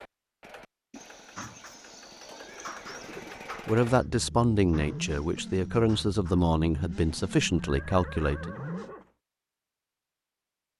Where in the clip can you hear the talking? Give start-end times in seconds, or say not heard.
3.6-8.5.